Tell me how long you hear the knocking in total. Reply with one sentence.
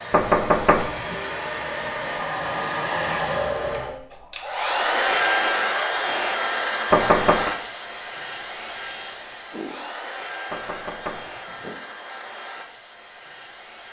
The knocking can be heard for 3 seconds in total.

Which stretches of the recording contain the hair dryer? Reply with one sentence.
You can hear the hair dryer from 0.0 to 13.8 s.